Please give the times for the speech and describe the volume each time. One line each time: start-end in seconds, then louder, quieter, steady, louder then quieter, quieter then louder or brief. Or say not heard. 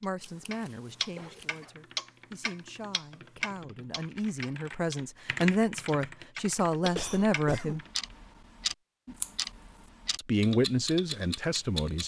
0.0-7.8 louder
10.2-12.0 brief.